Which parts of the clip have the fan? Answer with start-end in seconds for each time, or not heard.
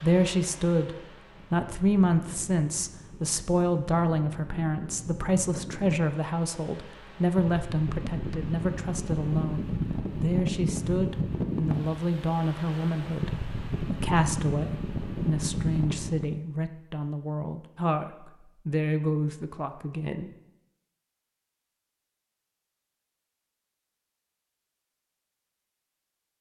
0.0-16.4.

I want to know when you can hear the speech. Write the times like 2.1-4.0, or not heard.
0.0-0.9, 1.5-20.3.